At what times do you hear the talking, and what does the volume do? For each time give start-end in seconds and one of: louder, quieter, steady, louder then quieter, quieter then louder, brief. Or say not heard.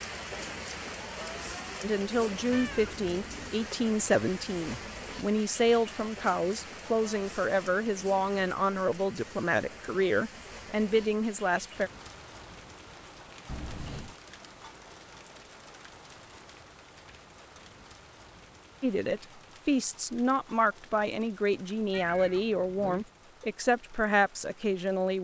1.8-11.9 steady
18.8-25.1 steady.